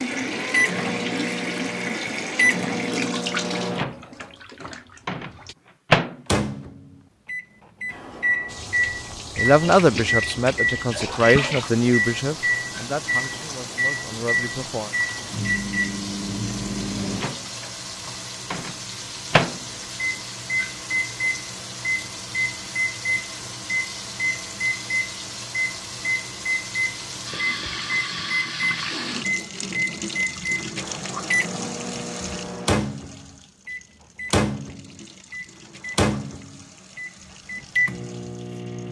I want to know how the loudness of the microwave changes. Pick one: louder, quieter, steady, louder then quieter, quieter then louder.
steady.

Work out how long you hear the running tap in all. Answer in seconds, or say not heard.
36 s.